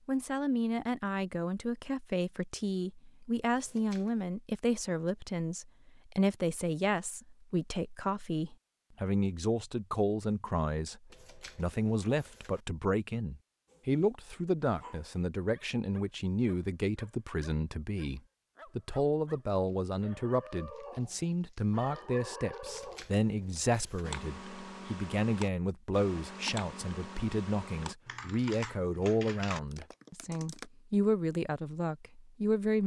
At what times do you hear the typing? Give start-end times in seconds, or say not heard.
24.0-30.6.